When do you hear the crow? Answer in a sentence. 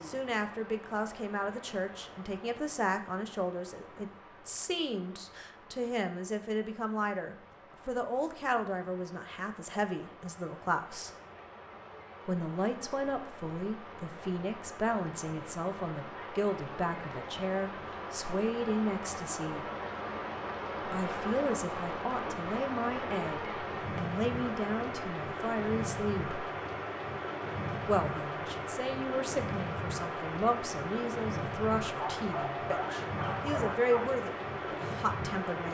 The crow can't be heard in this clip.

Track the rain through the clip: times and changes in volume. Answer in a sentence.
The rain can be heard from 0.0 to 35.6 s, getting louder.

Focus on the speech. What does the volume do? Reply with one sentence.
The volume of the speech stays about the same.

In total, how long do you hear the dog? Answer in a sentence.
You can hear the dog for 2 seconds altogether.